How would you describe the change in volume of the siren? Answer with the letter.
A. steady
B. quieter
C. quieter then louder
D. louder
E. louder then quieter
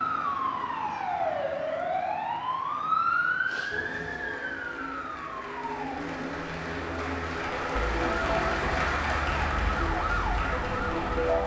C.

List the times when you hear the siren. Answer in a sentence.
You can hear the siren from 0.0 to 11.4 s.